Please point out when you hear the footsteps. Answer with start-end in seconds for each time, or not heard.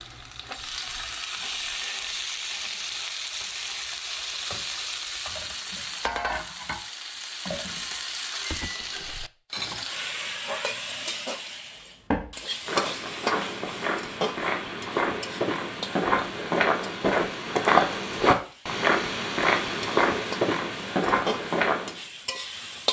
12.1-22.0.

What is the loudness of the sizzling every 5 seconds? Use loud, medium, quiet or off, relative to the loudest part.
loud, loud, loud, medium, loud.